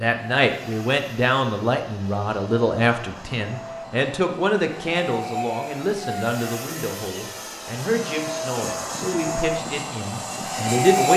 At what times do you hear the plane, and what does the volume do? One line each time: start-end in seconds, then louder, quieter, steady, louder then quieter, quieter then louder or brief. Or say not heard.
0.0-11.1 louder.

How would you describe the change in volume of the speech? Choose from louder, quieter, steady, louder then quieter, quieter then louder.
quieter.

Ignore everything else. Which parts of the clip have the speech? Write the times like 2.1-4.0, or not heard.
0.0-11.1.